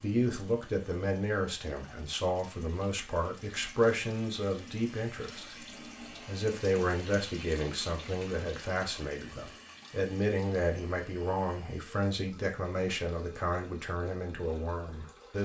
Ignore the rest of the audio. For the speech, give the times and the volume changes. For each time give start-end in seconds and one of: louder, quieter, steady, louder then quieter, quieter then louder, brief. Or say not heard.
0.0-15.4 steady.